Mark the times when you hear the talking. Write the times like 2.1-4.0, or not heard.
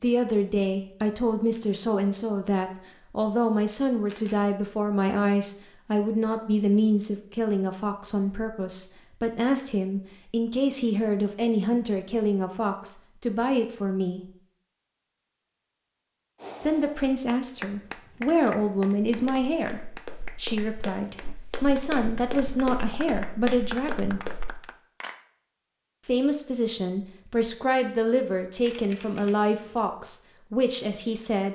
0.0-14.2, 16.6-24.3, 26.1-31.5.